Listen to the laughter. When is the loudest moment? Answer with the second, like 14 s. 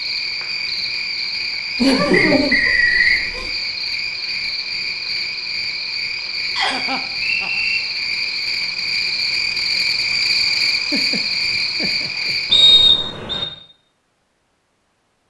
2 s.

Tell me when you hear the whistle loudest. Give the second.
13 s.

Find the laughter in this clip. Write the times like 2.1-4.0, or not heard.
1.8-3.5, 6.7-7.6, 10.9-12.3.